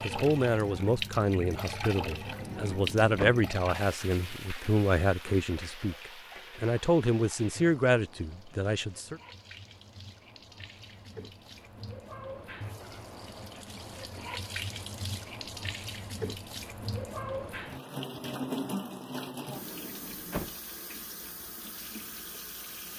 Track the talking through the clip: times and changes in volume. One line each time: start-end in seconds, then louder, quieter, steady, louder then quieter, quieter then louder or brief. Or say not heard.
0.0-9.2 steady.